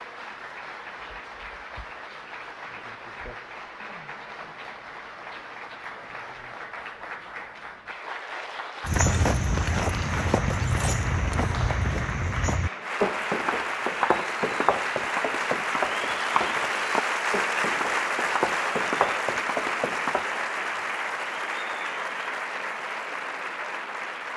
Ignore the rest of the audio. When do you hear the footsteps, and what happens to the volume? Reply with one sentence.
You can hear the footsteps from 8.8 to 20.3 s, at a steady volume.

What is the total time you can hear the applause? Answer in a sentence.
The applause can be heard for 24 seconds in total.